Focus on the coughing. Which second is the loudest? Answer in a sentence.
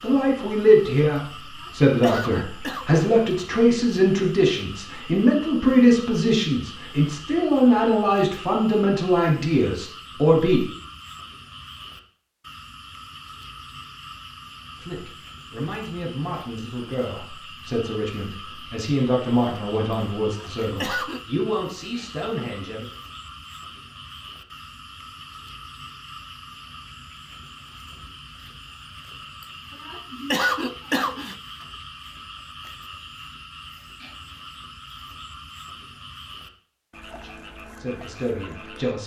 The volume of the coughing peaks at 30 seconds.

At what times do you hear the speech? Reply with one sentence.
The speech can be heard from 0.0 to 10.6 s, from 14.8 to 22.9 s and from 37.0 to 39.0 s.